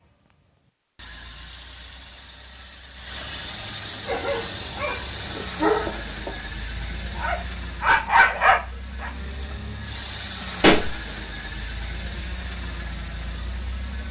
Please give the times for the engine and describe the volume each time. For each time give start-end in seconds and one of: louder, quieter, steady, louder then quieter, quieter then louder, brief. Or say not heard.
0.0-14.0 louder.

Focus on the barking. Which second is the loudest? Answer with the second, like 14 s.
8 s.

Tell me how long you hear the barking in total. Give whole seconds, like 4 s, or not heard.
5 s.